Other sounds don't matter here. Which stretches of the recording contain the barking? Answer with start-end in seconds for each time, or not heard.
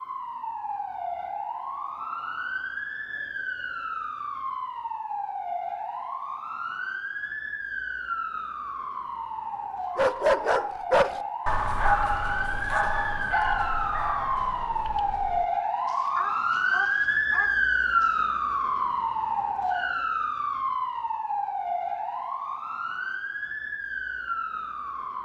9.9-18.4.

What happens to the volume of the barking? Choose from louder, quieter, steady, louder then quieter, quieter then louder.
quieter.